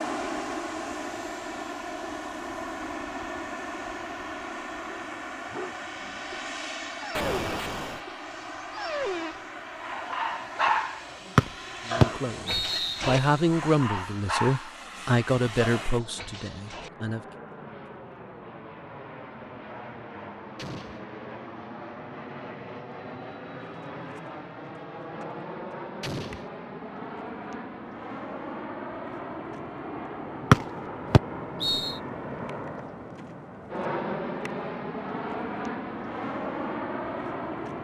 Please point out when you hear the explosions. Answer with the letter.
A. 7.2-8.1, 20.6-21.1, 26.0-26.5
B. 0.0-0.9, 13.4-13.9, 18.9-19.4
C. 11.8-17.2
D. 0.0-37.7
A.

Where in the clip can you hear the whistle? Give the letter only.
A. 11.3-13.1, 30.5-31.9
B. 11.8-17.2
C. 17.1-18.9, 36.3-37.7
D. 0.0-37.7
A.